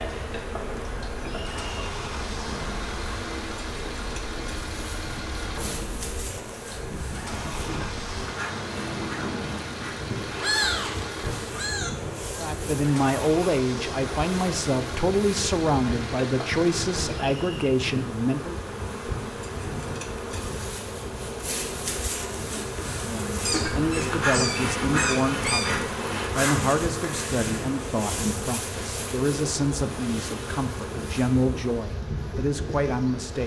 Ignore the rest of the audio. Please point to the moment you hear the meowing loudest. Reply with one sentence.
The volume of the meowing peaks at 11 seconds.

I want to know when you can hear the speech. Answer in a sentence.
The speech can be heard from 12.3 to 18.6 s and from 22.9 to 33.4 s.